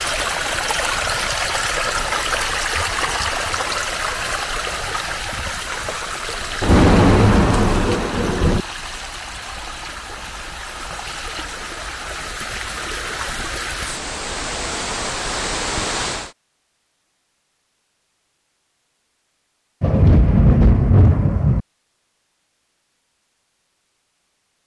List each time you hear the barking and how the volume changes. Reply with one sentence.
You can't hear the barking here.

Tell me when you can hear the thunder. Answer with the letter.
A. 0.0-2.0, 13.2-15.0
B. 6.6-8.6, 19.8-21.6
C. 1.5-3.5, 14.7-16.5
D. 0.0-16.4
B.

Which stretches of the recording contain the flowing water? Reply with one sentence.
You can hear the flowing water from 0.0 to 16.4 s.